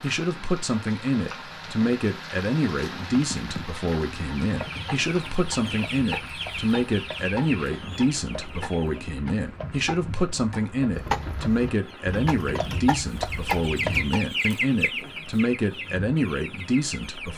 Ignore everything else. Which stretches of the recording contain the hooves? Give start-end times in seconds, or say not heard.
3.0-14.2.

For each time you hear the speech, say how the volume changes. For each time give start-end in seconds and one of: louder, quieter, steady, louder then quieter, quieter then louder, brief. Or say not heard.
0.0-17.3 steady.